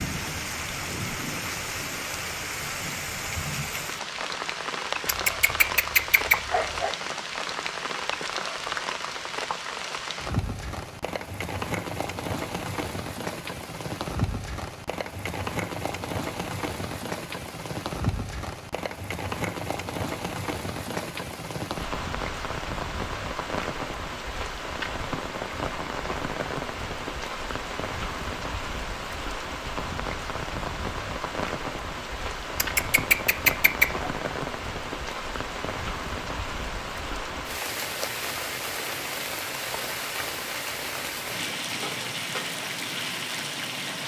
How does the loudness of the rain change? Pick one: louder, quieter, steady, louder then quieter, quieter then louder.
steady.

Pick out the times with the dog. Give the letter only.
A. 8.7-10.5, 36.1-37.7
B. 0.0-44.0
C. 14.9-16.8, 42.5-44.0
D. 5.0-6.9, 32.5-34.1
D.